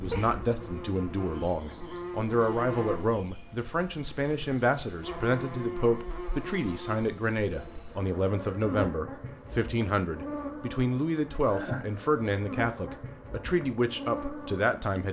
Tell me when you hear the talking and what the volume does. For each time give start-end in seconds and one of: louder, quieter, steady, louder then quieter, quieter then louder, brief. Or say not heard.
0.0-15.0 steady.